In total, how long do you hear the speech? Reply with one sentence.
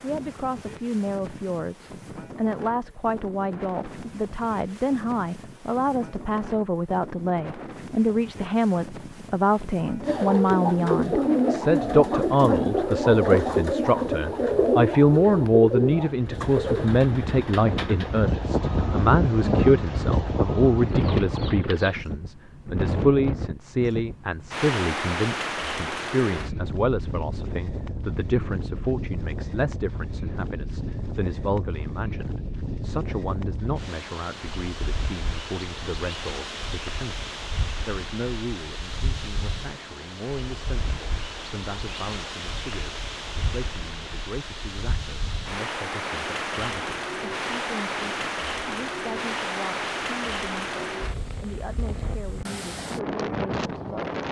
The speech can be heard for 54 seconds in total.